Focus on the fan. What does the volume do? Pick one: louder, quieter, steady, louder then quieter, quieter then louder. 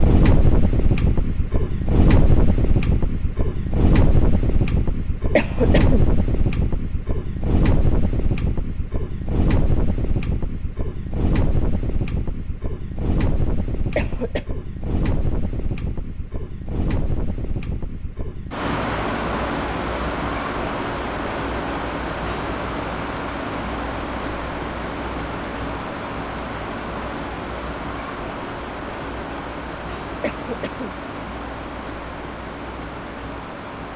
quieter.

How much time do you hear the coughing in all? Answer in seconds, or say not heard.
2 s.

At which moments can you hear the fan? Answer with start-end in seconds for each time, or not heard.
0.0-33.9.